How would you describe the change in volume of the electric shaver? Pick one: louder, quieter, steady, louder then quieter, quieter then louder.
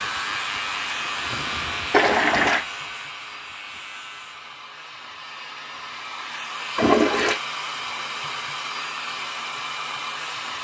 quieter.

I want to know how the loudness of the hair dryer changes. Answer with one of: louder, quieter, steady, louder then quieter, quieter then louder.
quieter then louder.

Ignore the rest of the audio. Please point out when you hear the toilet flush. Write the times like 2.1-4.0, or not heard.
1.9-2.6, 6.8-7.4.